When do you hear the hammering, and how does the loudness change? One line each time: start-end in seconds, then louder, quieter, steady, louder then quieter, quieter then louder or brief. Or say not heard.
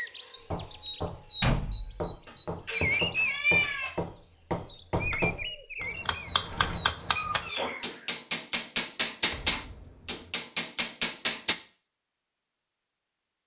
0.4-11.6 louder.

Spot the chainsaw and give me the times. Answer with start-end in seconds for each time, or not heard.
not heard.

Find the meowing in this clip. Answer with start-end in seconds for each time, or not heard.
2.2-3.9, 7.2-8.0.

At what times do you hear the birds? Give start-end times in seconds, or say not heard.
0.0-8.2.